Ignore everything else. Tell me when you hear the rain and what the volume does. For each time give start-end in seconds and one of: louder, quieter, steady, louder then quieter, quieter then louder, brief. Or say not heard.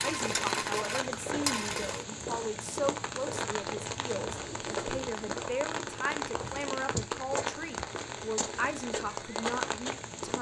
0.0-10.3 steady.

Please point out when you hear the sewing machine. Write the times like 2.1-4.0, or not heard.
0.0-2.0.